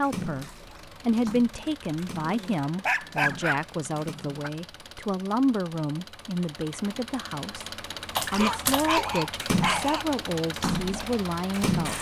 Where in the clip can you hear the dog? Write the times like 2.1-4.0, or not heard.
2.2-4.5, 8.3-10.1.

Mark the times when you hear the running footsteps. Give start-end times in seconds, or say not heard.
not heard.